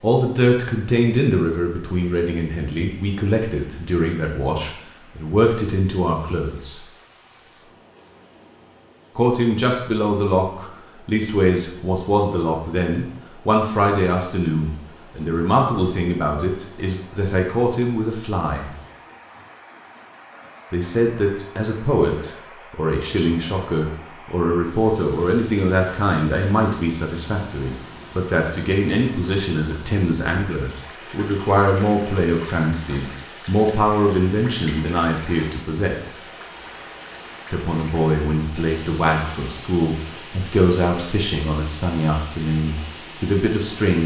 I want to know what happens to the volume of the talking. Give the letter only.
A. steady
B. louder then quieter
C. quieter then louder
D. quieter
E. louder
A.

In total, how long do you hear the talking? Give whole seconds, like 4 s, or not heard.
38 s.